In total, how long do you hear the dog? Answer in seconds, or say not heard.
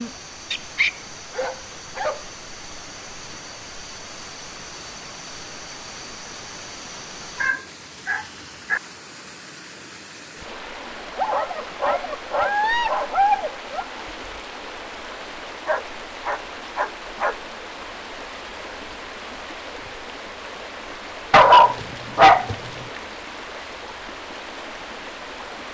9 s.